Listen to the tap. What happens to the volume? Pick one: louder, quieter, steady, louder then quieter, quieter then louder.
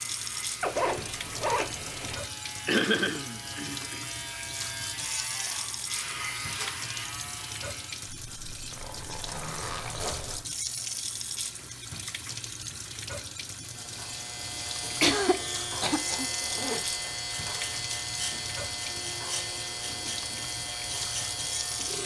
steady.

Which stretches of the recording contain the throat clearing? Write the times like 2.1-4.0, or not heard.
2.6-4.0, 15.0-16.3.